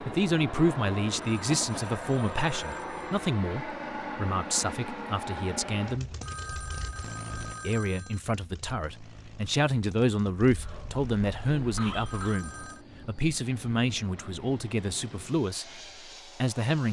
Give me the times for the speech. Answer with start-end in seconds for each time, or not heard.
0.0-6.1, 7.6-15.8, 16.4-16.8.